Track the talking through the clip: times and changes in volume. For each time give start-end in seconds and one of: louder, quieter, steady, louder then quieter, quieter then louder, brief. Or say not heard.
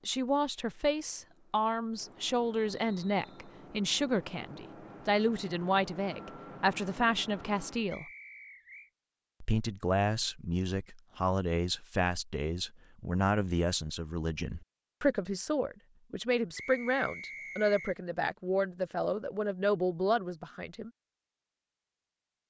0.1-8.1 steady
9.4-20.9 steady.